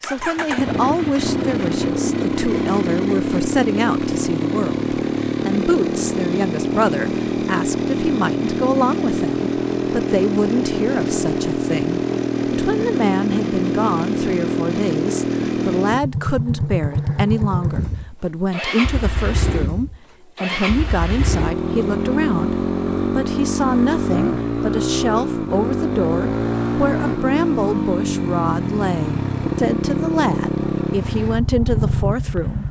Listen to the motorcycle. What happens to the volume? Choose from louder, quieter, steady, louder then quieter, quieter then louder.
steady.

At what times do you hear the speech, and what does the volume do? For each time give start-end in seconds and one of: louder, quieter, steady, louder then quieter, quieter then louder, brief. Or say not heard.
0.0-32.6 steady.